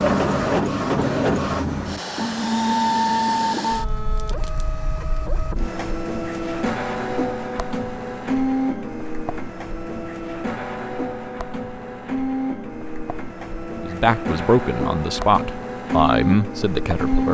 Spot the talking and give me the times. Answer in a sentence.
You can hear the talking from 13.8 to 17.2 s.